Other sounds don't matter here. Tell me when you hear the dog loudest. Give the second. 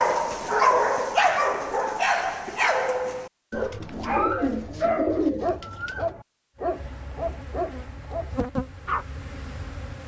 1 s.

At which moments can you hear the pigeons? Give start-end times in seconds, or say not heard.
3.5-6.1.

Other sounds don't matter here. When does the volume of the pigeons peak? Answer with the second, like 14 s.
5 s.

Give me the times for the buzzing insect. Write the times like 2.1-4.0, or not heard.
6.6-10.0.